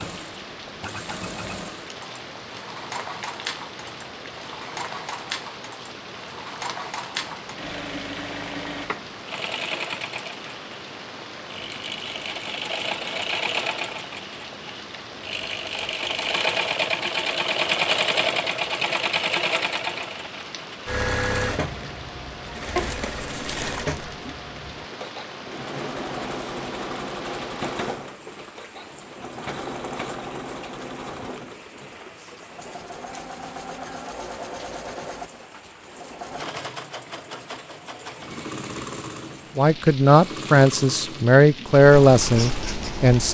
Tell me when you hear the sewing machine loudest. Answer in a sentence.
The loudest moment of the sewing machine is at 18 seconds.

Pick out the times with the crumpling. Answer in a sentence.
You can hear the crumpling from 22.8 to 24.1 s.